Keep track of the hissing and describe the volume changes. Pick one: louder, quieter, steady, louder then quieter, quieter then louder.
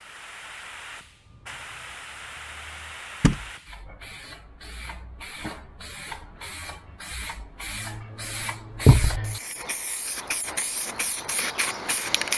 louder.